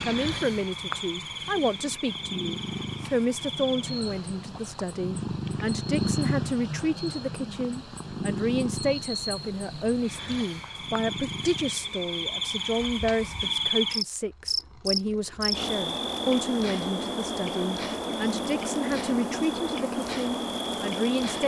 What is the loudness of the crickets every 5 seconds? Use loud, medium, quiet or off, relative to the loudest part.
medium, medium, loud, loud, loud.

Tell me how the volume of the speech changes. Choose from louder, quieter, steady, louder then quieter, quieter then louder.
steady.